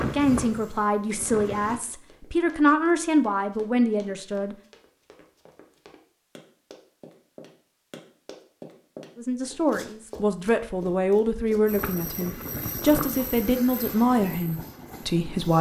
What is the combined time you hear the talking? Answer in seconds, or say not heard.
11 s.